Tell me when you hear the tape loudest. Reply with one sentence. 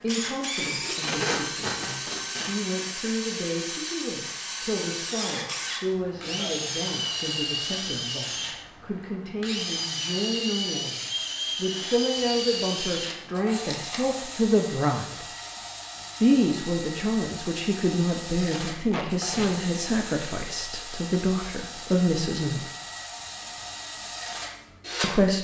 The volume of the tape peaks at 1 second.